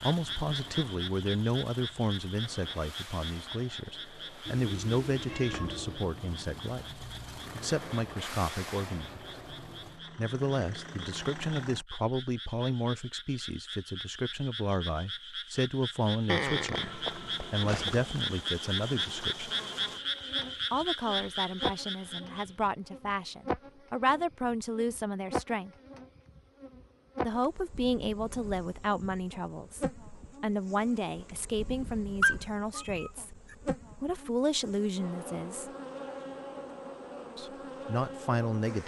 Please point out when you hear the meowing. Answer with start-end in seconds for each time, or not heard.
4.5-6.1, 16.2-17.9, 32.2-33.5.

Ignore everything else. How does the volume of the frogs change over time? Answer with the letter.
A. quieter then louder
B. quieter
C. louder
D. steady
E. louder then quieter
A.